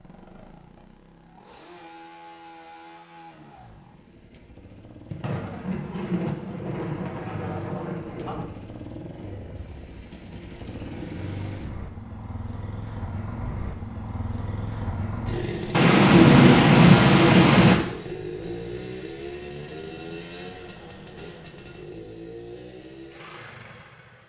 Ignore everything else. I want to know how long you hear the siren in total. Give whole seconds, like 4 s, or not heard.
not heard.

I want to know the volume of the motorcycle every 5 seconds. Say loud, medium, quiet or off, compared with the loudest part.
quiet, medium, loud, loud, medium.